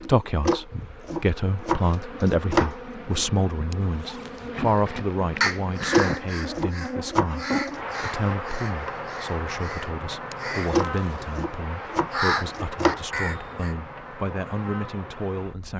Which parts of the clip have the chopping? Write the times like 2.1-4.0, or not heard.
0.5-3.2, 5.9-7.8, 10.7-13.0.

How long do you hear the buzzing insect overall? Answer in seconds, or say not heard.
16 s.